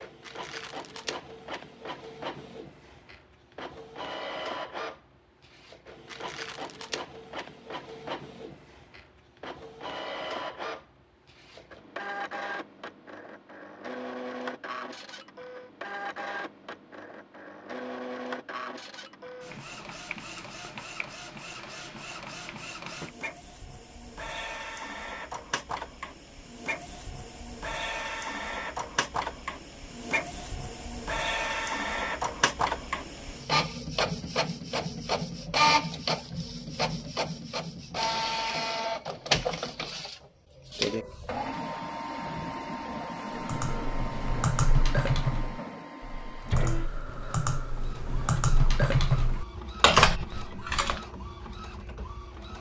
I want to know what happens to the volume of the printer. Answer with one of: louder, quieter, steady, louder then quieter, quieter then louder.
louder then quieter.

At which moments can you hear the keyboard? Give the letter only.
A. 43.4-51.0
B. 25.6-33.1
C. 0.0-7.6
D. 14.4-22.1
A.